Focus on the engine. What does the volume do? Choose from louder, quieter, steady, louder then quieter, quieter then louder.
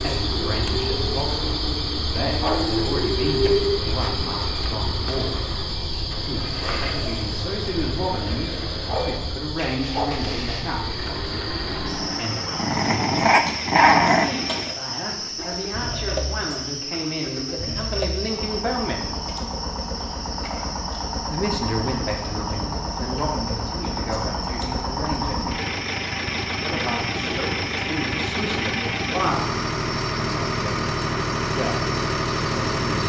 louder.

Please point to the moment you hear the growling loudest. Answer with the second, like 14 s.
14 s.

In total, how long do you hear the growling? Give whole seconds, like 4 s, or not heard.
3 s.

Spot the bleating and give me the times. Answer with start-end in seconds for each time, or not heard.
not heard.